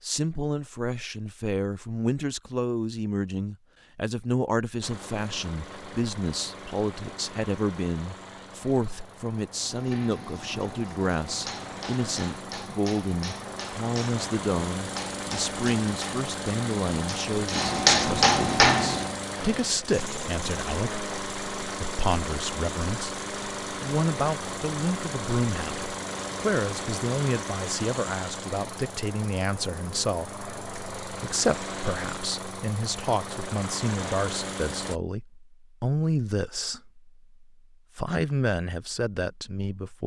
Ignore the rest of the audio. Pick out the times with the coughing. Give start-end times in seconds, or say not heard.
not heard.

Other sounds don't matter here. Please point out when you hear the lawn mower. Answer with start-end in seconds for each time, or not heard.
4.8-35.0.